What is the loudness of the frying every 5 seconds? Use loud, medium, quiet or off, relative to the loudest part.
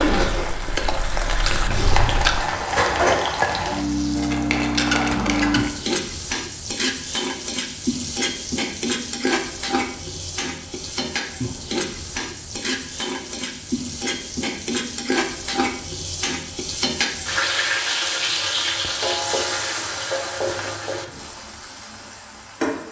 loud, loud, medium, loud, medium.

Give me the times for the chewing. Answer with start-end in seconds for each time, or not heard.
0.0-2.5.